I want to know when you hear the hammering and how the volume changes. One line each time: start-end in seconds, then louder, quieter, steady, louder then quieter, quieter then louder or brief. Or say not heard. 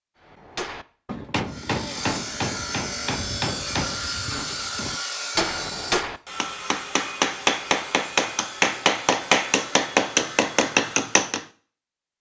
0.2-11.4 louder.